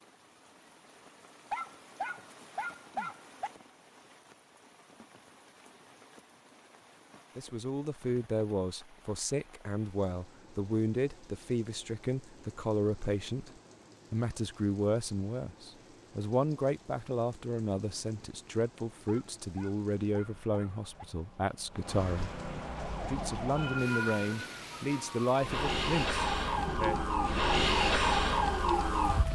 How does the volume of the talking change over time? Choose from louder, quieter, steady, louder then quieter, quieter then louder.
steady.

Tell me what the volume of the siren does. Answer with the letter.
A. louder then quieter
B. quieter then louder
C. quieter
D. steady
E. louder
B.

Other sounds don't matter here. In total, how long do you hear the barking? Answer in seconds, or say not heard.
4 s.